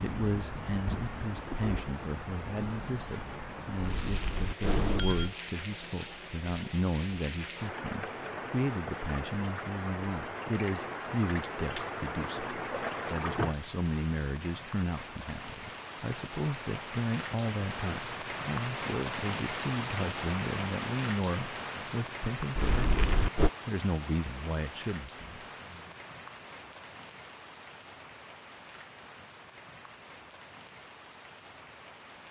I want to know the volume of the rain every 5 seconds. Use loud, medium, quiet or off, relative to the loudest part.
loud, loud, loud, loud, loud, medium, quiet.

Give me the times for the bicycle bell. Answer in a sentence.
You can hear the bicycle bell from 3.8 to 5.3 s and from 22.6 to 23.5 s.